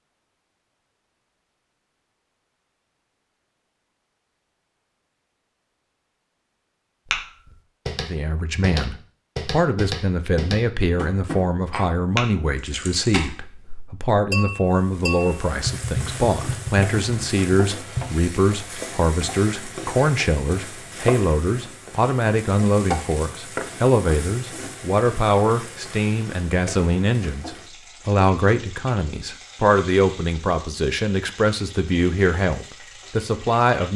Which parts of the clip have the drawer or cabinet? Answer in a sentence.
The drawer or cabinet can't be heard in this clip.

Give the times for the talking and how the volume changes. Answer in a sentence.
The talking can be heard from 8.0 to 33.9 s, at a steady volume.